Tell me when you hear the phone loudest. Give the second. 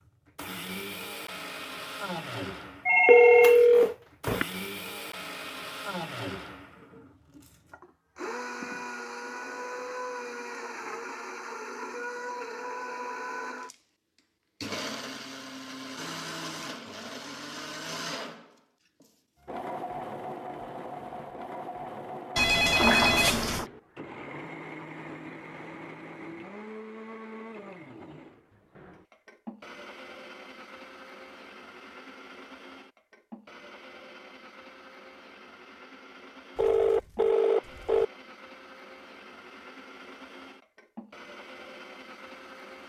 3 s.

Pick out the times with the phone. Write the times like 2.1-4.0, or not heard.
2.9-4.5, 22.4-23.6, 36.5-38.0.